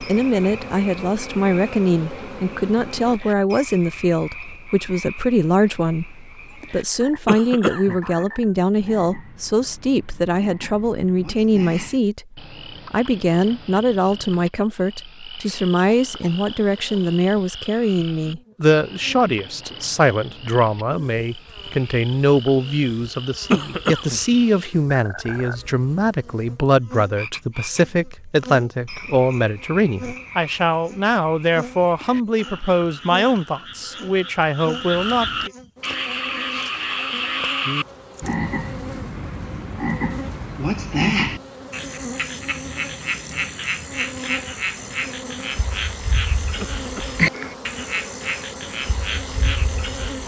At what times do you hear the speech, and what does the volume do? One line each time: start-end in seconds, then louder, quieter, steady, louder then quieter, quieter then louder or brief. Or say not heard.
0.0-35.5 steady.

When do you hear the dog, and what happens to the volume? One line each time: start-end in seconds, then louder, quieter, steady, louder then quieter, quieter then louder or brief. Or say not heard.
not heard.